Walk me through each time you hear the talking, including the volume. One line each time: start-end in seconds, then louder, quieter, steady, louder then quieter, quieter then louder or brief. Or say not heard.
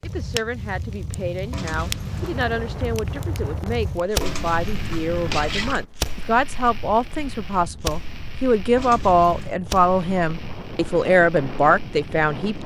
0.0-12.6 louder.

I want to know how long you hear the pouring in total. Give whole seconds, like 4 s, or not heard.
3 s.